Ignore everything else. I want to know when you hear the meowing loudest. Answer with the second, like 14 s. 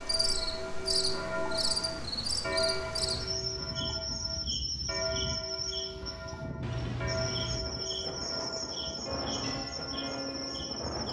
7 s.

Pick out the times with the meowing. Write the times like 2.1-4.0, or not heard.
2.8-3.7, 6.6-7.6.